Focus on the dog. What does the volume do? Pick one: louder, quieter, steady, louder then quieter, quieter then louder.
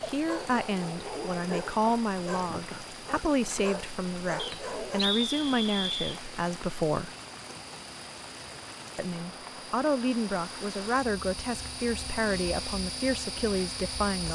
steady.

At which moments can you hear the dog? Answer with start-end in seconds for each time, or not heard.
0.1-5.0.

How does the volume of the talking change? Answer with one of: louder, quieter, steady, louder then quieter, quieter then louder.
steady.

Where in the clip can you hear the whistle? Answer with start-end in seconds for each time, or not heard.
4.3-6.2.